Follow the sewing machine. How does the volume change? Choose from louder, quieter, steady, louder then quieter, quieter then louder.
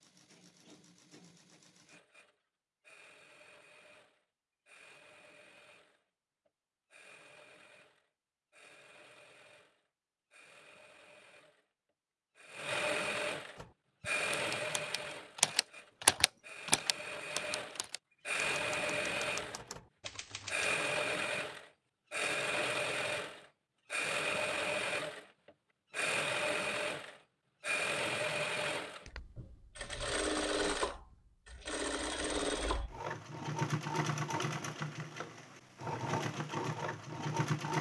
louder.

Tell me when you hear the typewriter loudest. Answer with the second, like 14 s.
16 s.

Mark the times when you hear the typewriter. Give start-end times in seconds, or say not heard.
13.6-20.8.